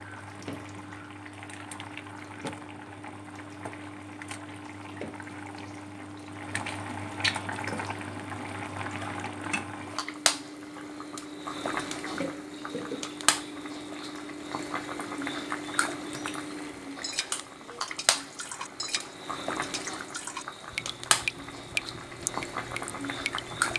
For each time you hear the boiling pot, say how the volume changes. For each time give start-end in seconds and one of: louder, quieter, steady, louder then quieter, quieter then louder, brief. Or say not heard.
0.0-23.7 louder.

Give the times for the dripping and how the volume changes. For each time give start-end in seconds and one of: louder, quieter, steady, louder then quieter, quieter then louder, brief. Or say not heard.
0.1-23.7 louder.